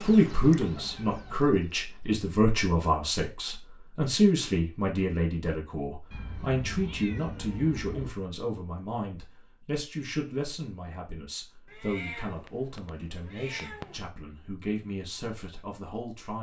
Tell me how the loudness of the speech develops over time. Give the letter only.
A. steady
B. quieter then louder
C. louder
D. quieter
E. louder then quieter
D.